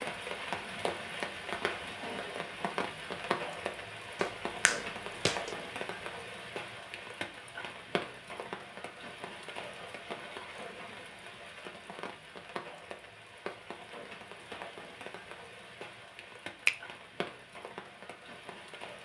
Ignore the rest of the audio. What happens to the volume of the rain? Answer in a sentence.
The volume of the rain goes down.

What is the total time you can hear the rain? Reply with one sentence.
The rain can be heard for 19 seconds in total.